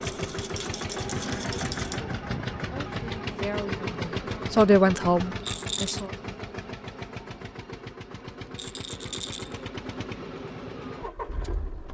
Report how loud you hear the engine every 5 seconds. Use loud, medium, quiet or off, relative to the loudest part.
loud, medium, medium.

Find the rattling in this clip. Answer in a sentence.
The rattling can be heard from 0.0 to 2.0 s, from 5.4 to 6.0 s and from 8.6 to 9.6 s.